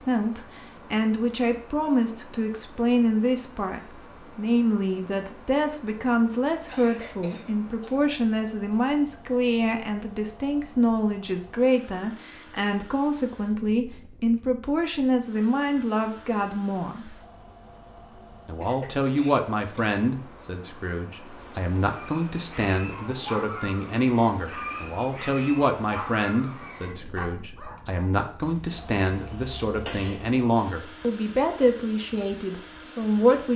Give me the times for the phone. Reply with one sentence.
You can't hear the phone here.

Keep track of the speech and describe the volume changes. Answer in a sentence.
The volume of the speech stays about the same.